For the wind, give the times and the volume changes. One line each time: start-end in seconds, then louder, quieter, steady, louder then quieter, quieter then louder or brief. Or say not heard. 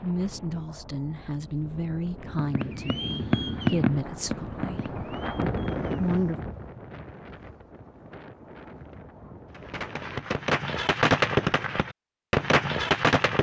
0.0-10.2 louder then quieter.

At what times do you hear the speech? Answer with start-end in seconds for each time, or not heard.
0.0-5.0, 6.0-6.4.